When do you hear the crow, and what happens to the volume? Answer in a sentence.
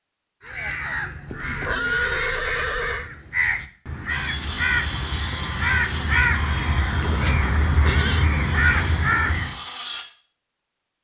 The crow can be heard from 0.4 to 9.6 s, getting louder.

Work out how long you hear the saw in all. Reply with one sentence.
The saw can be heard for 6 seconds in total.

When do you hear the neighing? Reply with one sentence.
You can hear the neighing from 1.2 to 3.1 s and from 7.0 to 8.3 s.